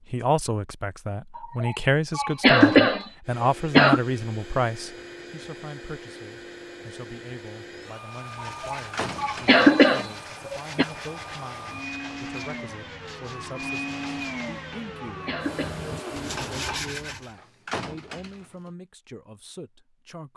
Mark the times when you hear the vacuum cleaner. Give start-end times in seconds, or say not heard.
3.2-16.8.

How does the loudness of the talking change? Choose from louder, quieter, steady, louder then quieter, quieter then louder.
quieter.